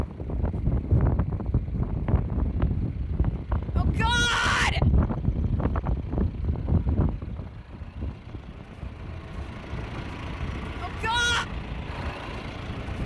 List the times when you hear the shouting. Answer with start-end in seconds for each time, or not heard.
3.8-4.8, 10.8-11.4.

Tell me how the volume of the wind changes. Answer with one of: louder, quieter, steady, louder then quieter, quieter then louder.
quieter.